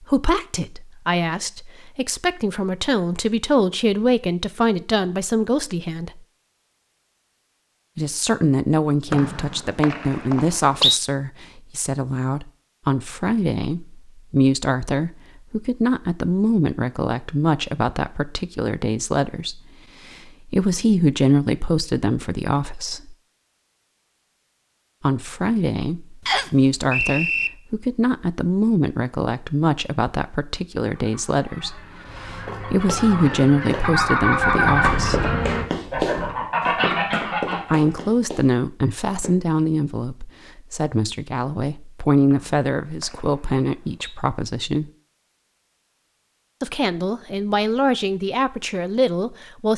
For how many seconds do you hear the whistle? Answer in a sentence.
The whistle can be heard for 5 seconds in total.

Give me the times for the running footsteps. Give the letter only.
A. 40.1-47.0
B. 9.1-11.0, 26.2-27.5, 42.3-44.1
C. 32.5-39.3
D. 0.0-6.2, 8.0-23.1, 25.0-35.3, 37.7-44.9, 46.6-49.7
C.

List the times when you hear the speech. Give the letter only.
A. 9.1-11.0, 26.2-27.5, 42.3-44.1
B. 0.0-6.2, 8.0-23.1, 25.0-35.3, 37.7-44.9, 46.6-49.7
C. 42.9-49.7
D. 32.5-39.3
B.